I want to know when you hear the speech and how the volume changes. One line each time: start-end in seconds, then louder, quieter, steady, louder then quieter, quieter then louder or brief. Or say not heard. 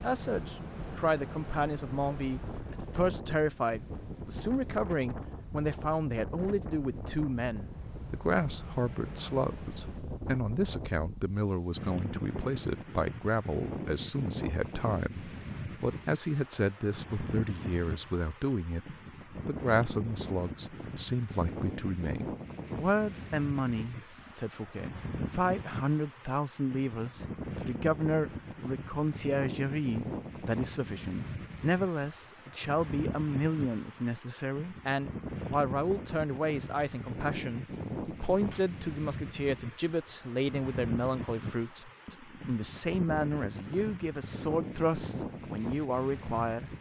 0.0-46.7 steady.